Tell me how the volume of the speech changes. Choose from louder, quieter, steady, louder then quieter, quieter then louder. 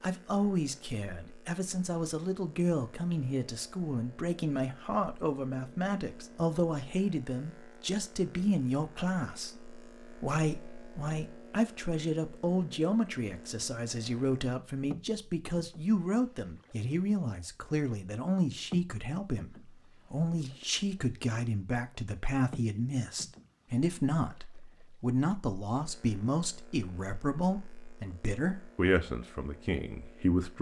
steady.